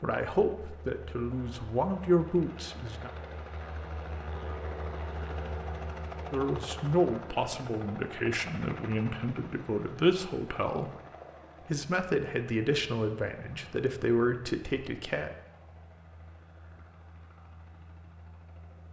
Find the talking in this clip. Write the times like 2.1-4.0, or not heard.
0.0-3.1, 6.3-10.9, 11.7-15.3.